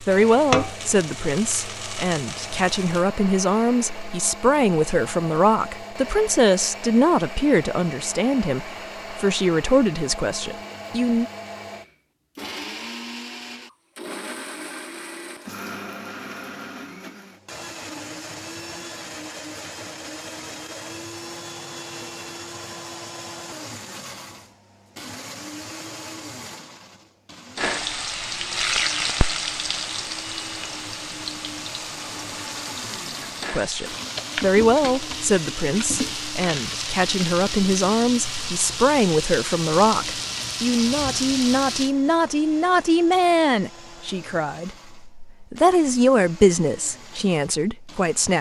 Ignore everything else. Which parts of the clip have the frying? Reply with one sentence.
The frying can be heard from 0.0 to 3.0 s and from 27.6 to 42.0 s.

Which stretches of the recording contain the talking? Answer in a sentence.
You can hear the talking from 0.0 to 11.2 s and from 33.5 to 48.3 s.